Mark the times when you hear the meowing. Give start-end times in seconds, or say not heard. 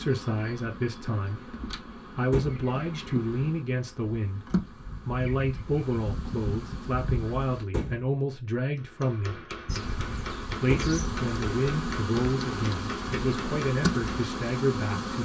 not heard.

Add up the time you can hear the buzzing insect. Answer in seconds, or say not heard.
13 s.